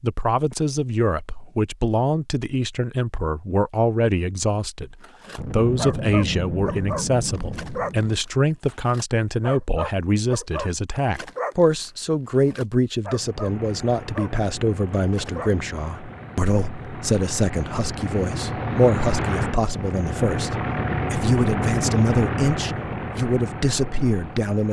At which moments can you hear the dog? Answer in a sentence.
You can hear the dog from 5.0 to 14.3 s and from 14.9 to 15.5 s.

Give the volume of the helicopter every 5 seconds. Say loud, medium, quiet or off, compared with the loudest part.
off, off, quiet, loud, loud.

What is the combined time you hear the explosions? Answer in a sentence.
You can hear the explosions for 3 seconds altogether.